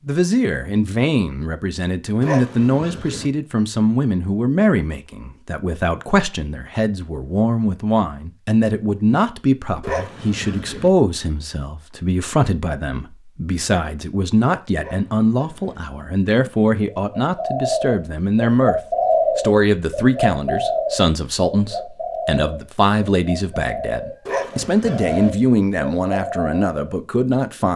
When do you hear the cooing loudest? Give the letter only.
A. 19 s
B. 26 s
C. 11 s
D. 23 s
A.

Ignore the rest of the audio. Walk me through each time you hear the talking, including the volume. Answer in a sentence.
You can hear the talking from 0.1 to 27.7 s, at a steady volume.